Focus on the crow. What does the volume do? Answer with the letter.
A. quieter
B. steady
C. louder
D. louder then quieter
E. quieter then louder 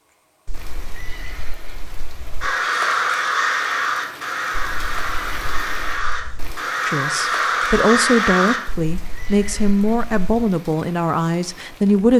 E.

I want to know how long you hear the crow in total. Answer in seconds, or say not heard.
6 s.